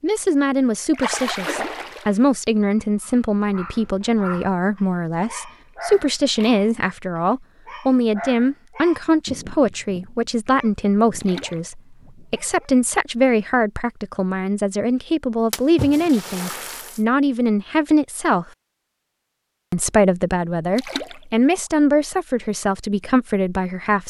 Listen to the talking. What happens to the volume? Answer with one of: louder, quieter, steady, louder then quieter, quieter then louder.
steady.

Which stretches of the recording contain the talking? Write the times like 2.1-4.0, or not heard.
0.0-18.4, 19.7-24.0.